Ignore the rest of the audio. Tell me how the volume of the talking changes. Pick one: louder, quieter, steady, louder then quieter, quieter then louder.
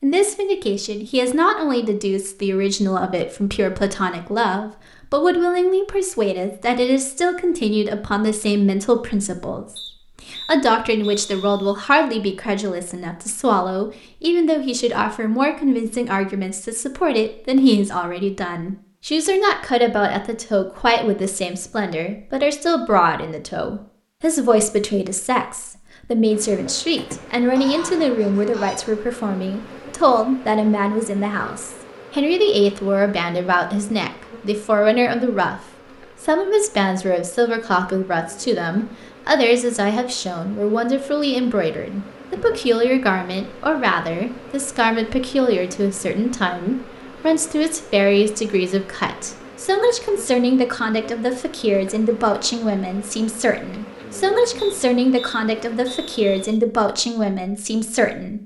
steady.